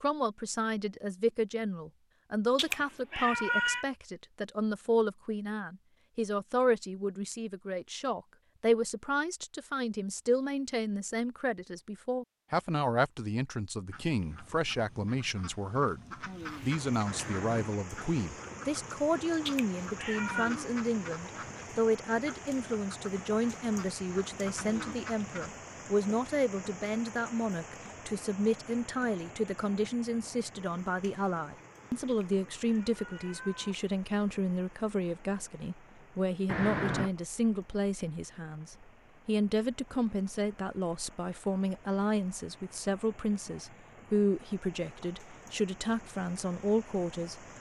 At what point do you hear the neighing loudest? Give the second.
37 s.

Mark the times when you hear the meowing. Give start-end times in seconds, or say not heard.
2.5-3.9, 19.4-20.6, 32.0-33.8.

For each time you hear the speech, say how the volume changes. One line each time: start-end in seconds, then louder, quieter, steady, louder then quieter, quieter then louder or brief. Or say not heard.
0.0-47.4 steady.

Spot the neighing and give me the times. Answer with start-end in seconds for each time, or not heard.
17.1-17.7, 36.5-37.1.